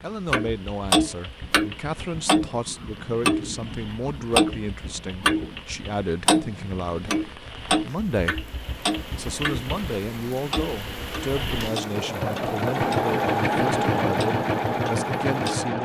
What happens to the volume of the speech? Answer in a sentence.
The volume of the speech stays about the same.